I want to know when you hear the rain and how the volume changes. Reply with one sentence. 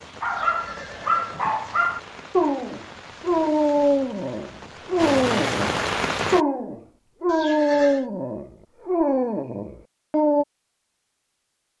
The rain can be heard from 0.0 to 6.5 s, getting louder.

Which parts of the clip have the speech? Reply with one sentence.
The speech can't be heard in this clip.